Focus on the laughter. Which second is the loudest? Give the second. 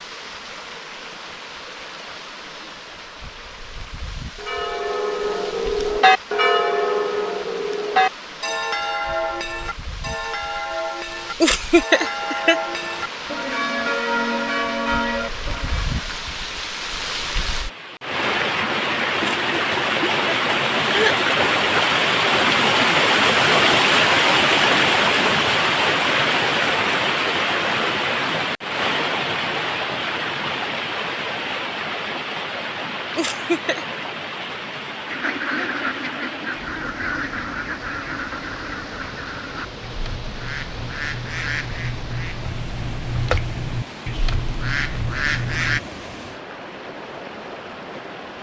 12 s.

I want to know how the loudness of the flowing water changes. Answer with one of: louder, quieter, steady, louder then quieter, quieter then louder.
louder then quieter.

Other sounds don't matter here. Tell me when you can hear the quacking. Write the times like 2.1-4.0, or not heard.
35.0-45.8.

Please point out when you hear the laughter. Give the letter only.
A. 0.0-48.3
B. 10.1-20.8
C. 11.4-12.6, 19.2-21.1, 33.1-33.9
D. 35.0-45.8
C.